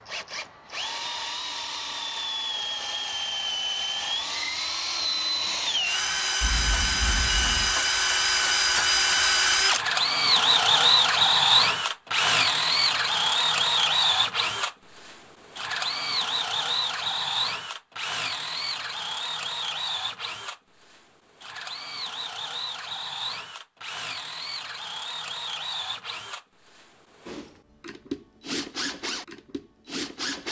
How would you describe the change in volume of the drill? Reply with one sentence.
The loudness of the drill goes up, then down.